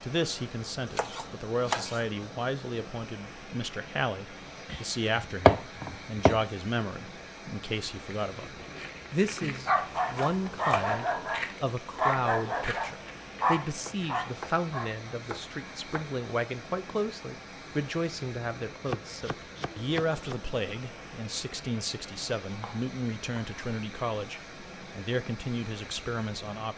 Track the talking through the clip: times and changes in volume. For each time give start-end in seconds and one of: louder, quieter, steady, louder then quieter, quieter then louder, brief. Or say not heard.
0.0-26.7 steady.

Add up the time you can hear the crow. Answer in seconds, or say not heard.
not heard.